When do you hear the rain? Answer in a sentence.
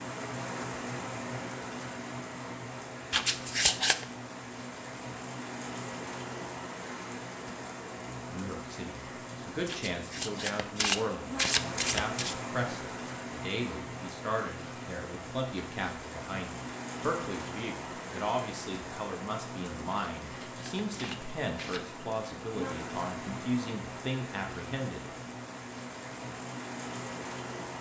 The rain can be heard from 0.0 to 27.7 s.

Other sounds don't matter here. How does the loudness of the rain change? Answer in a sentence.
The volume of the rain stays about the same.